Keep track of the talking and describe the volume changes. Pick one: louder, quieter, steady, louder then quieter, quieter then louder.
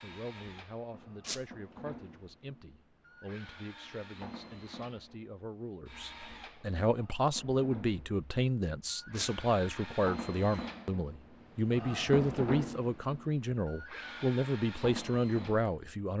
louder.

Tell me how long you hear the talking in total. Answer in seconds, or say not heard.
16 s.